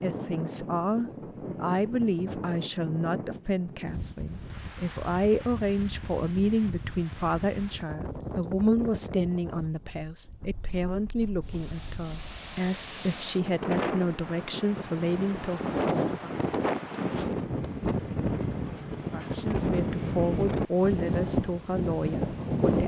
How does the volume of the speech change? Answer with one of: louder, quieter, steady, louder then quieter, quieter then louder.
steady.